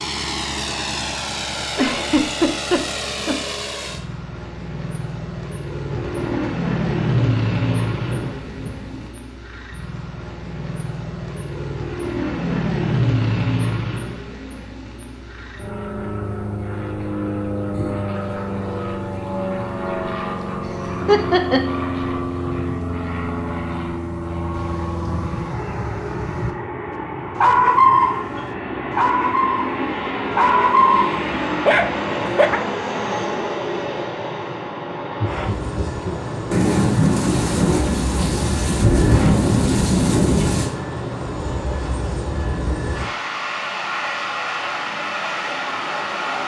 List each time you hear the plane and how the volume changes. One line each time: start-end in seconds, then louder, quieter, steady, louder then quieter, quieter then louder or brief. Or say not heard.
0.0-46.4 steady.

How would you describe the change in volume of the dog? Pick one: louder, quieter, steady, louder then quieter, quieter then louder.
quieter then louder.